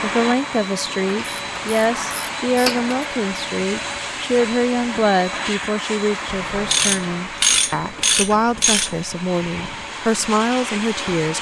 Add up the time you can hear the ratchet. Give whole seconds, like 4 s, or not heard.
5 s.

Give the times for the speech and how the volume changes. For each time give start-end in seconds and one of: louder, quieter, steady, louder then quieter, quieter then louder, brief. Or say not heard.
0.0-11.3 steady.